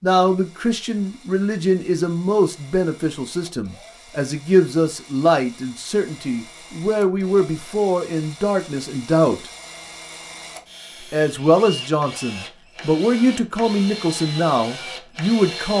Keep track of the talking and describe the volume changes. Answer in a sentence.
The loudness of the talking stays about the same.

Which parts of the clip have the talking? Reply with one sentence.
You can hear the talking from 0.0 to 9.4 s and from 11.1 to 15.7 s.